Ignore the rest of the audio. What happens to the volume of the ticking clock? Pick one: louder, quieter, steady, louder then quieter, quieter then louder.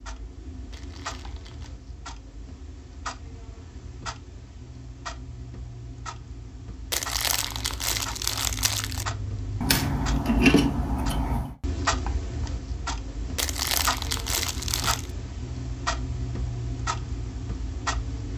louder.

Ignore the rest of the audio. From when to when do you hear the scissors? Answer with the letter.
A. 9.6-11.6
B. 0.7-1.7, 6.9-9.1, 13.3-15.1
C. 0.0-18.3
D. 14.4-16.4
A.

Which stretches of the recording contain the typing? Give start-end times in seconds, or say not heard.
not heard.